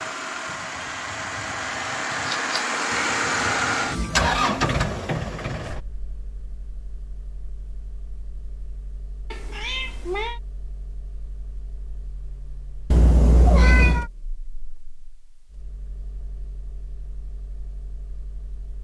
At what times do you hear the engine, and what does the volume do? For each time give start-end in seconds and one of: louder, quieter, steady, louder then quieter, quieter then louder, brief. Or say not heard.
0.0-18.7 quieter.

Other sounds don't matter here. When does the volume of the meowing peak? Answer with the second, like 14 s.
14 s.